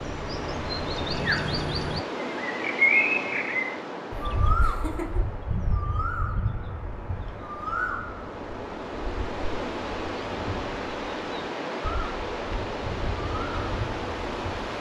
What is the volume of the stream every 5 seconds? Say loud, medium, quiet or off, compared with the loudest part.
loud, medium, loud.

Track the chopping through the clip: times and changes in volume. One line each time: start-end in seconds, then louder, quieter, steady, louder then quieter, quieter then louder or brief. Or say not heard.
not heard.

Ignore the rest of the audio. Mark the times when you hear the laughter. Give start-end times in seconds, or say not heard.
4.5-5.2.